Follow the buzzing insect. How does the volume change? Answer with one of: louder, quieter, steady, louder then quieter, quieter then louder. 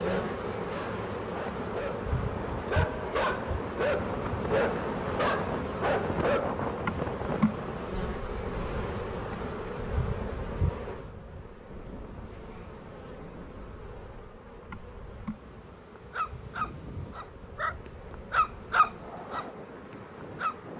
quieter.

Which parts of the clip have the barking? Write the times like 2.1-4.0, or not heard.
0.0-6.5, 15.9-20.7.